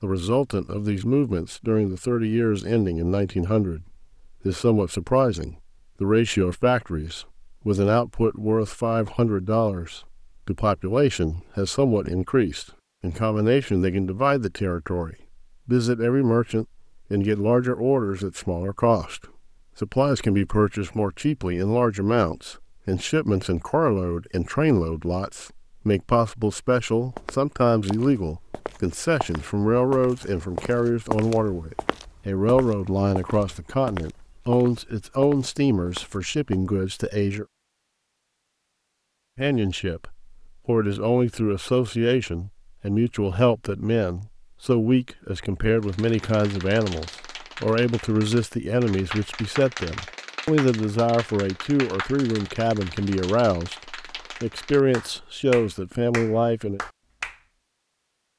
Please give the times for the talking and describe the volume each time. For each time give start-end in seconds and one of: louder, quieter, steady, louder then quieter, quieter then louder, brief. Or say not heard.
0.0-37.5 steady
39.4-56.8 steady.